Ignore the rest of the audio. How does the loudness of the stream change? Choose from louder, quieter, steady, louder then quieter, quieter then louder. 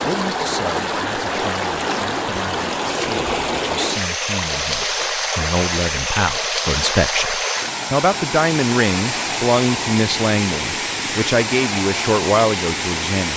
steady.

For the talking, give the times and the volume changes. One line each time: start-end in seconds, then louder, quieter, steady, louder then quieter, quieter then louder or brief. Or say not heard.
0.0-13.3 louder.